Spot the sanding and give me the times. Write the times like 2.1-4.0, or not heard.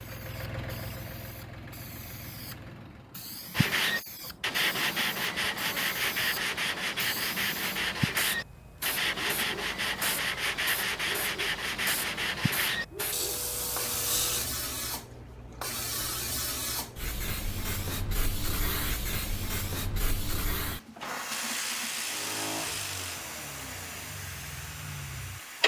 3.5-14.4.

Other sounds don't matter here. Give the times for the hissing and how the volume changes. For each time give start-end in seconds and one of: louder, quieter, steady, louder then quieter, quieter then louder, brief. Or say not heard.
0.0-25.6 louder.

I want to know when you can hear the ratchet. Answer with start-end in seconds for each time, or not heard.
21.3-23.2.